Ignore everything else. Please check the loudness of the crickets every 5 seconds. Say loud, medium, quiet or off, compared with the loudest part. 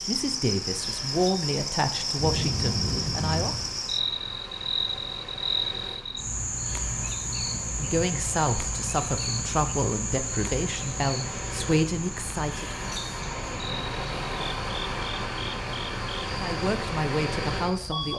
loud, loud, medium, medium.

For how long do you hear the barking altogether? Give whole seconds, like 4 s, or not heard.
not heard.